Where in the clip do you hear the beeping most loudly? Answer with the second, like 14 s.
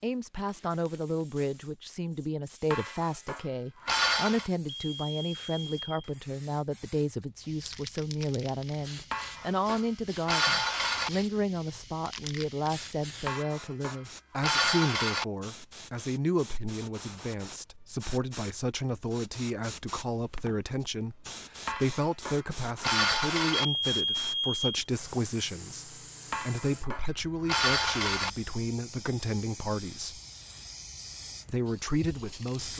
24 s.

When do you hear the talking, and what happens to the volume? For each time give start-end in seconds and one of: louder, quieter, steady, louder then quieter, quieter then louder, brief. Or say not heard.
0.0-30.2 steady
31.4-32.7 brief.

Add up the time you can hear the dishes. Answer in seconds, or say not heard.
10 s.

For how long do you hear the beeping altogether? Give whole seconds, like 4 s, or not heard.
3 s.